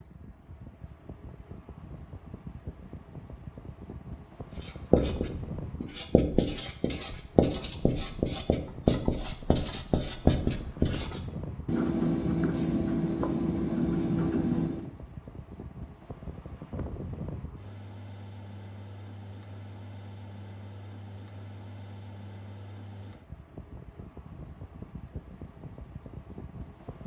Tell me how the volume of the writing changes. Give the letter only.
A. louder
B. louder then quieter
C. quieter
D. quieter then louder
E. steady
E.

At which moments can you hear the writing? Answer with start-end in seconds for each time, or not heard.
4.5-14.9.